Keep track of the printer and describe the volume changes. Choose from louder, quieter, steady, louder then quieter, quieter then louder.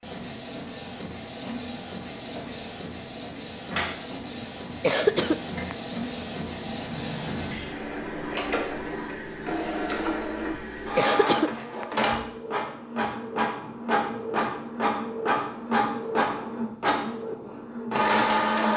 louder.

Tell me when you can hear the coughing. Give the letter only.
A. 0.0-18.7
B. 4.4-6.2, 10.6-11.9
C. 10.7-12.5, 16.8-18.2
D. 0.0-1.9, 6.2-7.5
B.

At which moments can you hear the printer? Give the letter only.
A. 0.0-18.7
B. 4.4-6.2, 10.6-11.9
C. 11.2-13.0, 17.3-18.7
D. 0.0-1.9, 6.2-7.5
A.